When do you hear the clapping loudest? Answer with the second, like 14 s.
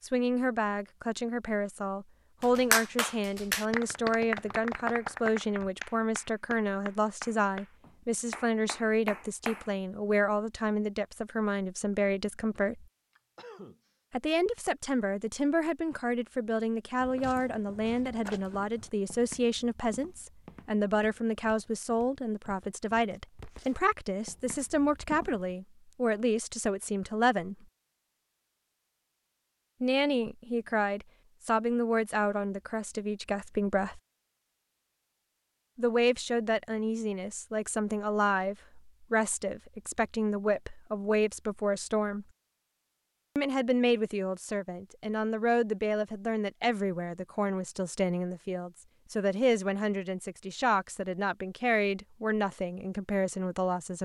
3 s.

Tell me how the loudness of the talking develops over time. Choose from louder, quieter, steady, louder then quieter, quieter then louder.
steady.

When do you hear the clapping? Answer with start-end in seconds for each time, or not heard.
2.4-9.7.